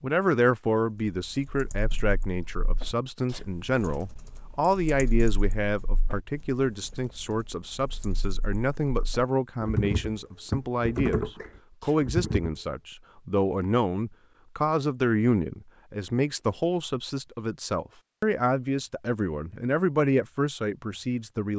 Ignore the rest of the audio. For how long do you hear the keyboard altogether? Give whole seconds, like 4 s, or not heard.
11 s.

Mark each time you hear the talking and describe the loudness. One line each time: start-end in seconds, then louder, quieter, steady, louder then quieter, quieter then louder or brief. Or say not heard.
0.0-21.5 steady.